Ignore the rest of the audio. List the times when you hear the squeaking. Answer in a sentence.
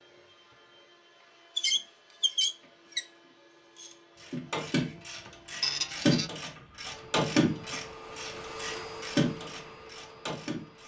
The squeaking can be heard from 1.6 to 3.0 s and from 5.6 to 6.3 s.